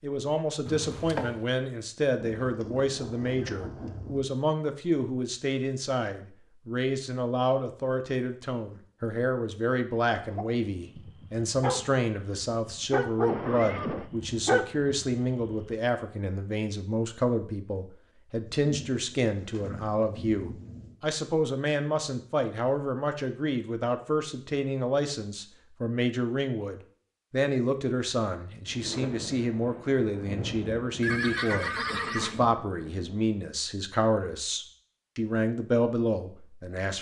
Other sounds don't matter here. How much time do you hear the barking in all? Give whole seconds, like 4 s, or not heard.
5 s.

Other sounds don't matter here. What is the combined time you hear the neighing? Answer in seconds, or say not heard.
3 s.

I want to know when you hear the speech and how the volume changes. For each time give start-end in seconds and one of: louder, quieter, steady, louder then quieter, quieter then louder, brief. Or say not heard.
0.0-36.9 steady.